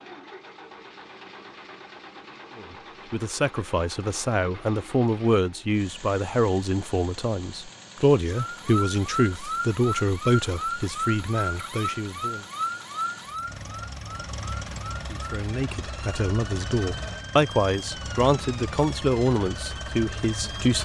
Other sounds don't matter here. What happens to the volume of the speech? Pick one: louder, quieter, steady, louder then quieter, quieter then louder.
steady.